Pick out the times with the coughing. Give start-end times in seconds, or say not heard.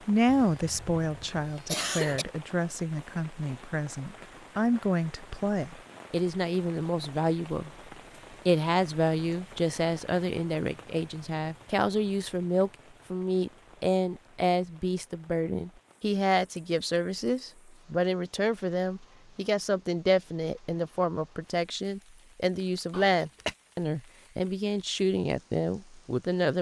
0.2-2.2, 22.9-23.6.